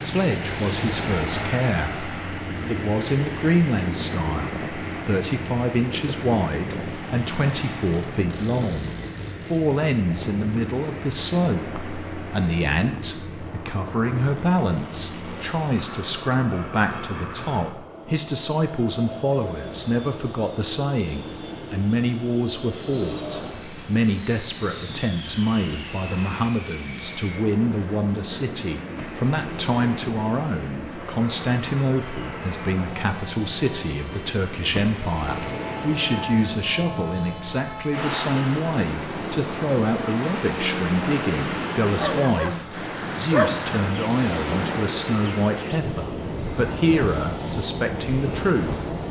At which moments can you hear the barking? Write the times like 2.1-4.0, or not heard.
42.0-42.5, 43.3-43.7.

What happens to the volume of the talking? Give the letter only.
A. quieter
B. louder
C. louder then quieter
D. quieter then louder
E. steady
E.